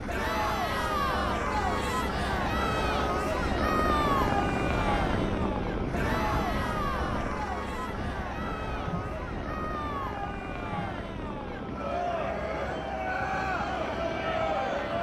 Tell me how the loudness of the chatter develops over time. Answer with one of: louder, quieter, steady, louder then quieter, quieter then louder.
quieter then louder.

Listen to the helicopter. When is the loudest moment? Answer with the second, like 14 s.
4 s.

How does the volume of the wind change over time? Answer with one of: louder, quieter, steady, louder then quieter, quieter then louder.
louder then quieter.